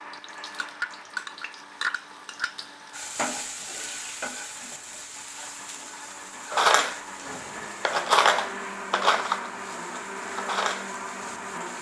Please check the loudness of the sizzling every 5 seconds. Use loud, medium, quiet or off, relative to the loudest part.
loud, medium, medium.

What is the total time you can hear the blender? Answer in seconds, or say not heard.
12 s.